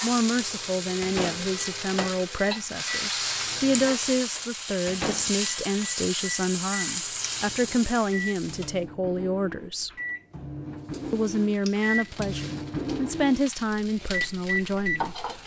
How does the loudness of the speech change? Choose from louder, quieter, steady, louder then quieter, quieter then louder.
steady.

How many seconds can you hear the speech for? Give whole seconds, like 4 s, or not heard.
14 s.